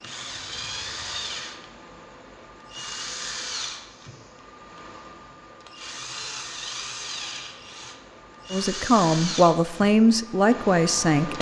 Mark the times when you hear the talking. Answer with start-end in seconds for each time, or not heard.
8.5-11.3.